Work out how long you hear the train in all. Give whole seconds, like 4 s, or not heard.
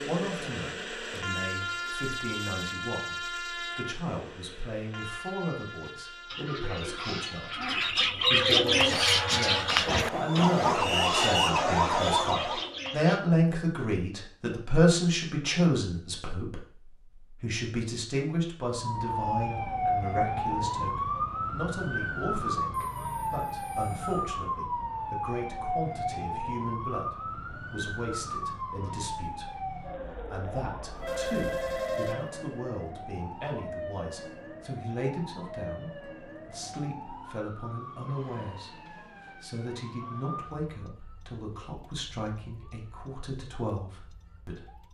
11 s.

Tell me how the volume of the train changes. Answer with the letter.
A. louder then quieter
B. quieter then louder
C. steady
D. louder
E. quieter
B.